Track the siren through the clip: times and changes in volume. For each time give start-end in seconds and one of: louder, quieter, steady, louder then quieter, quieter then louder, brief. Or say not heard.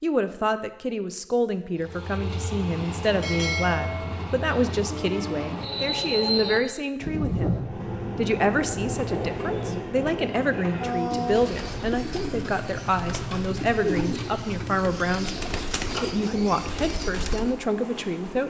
not heard.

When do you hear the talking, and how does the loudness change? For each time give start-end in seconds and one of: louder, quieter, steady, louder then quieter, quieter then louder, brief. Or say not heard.
0.0-18.4 steady.